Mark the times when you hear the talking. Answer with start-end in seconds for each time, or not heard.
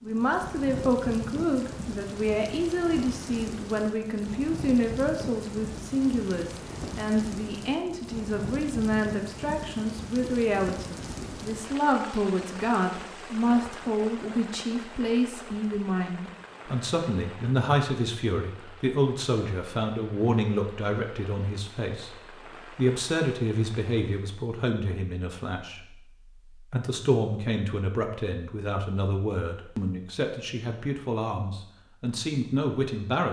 0.0-25.9, 26.6-33.2.